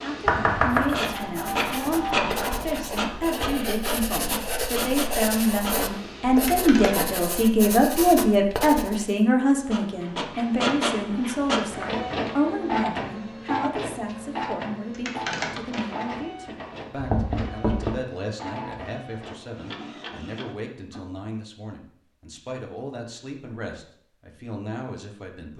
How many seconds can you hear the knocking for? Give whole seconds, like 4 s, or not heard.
2 s.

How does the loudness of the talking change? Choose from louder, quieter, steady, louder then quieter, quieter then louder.
louder then quieter.